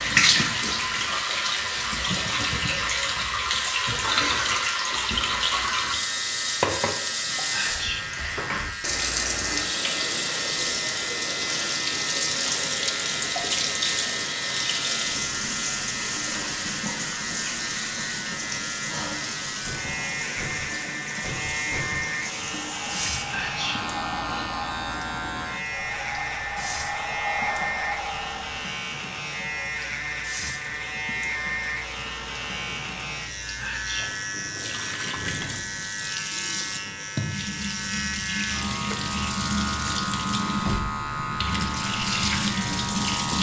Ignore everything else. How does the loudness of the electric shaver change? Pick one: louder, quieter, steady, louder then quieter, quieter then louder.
steady.